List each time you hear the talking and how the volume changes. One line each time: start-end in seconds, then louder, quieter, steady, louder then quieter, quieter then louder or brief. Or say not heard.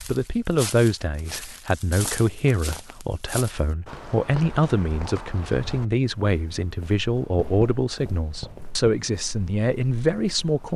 0.1-10.7 steady.